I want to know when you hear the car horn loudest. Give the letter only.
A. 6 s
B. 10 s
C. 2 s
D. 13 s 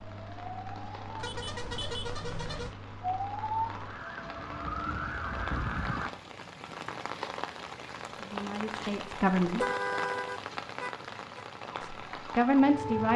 B.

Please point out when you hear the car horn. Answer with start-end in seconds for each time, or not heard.
1.1-2.8, 9.5-11.4.